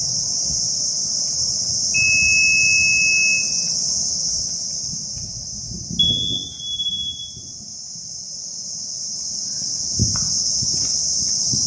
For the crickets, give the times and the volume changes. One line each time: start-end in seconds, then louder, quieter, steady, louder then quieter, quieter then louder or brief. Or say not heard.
0.0-11.6 quieter then louder.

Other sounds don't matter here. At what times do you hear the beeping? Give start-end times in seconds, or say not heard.
1.9-3.5, 6.0-7.3.